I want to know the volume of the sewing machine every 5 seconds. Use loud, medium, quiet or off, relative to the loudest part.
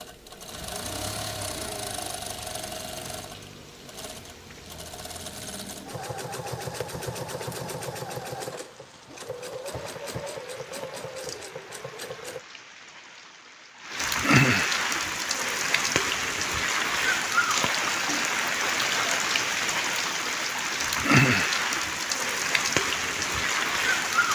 loud, loud, loud, off, off.